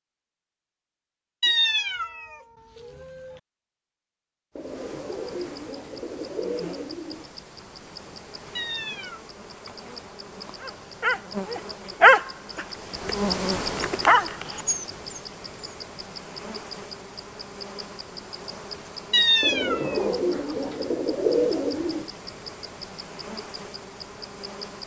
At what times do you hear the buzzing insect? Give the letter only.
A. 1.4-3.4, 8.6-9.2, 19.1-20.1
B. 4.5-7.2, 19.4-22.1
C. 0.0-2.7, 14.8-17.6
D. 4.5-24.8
D.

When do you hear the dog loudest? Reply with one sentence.
The loudest moment of the dog is at 12 seconds.